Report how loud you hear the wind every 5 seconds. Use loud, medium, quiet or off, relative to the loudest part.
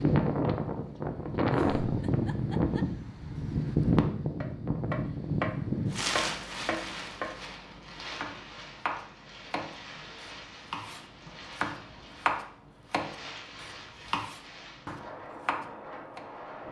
loud, medium, quiet, quiet.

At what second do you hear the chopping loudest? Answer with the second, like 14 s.
12 s.